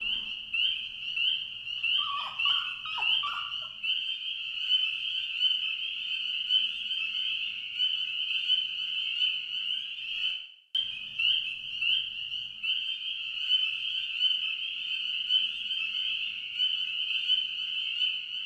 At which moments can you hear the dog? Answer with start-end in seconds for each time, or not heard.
1.9-3.7.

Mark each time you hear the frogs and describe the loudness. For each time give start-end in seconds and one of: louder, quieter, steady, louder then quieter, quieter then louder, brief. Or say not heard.
0.0-18.4 steady.